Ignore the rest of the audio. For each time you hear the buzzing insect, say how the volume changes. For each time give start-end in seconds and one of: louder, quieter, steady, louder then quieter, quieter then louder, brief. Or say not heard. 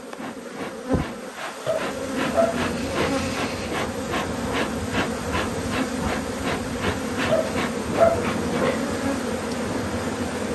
0.0-10.5 steady.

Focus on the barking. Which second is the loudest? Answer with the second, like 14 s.
8 s.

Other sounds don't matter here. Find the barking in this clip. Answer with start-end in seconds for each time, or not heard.
1.6-3.1, 7.2-8.8.